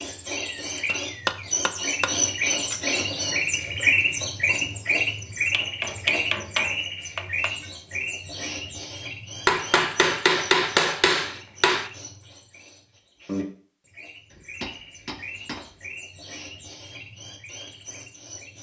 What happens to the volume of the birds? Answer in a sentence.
The loudness of the birds goes down.